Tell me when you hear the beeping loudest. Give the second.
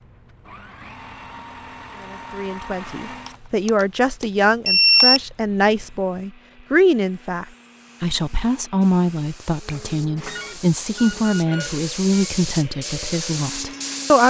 5 s.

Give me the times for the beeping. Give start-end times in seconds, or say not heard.
3.2-5.2, 9.7-12.3.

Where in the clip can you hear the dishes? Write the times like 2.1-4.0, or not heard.
not heard.